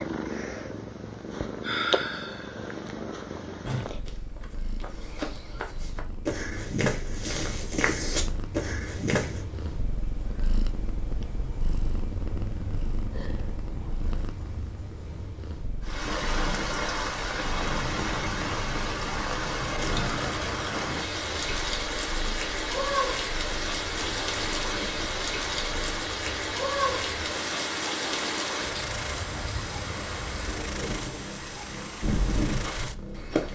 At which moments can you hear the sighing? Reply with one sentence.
You can hear the sighing from 1.6 to 2.7 s.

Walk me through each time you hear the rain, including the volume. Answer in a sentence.
You can hear the rain from 15.8 to 33.5 s, getting quieter.